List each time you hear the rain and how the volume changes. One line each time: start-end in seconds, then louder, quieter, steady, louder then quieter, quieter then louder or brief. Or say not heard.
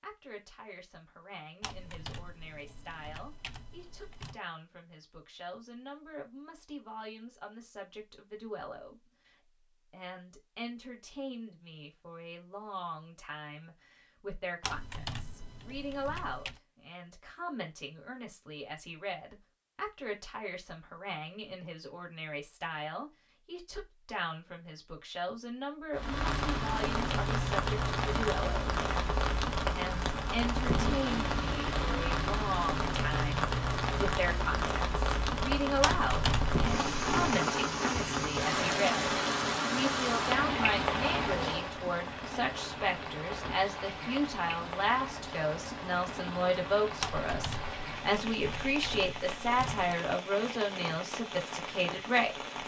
25.9-52.6 quieter.